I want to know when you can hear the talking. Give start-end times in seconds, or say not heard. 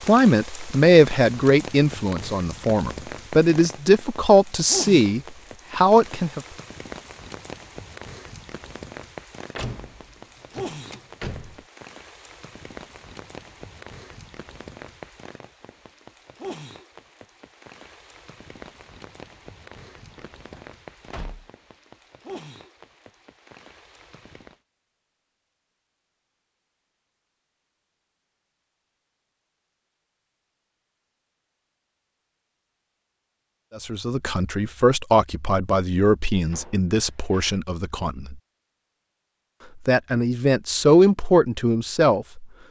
0.1-6.4, 33.8-38.4, 39.9-42.5.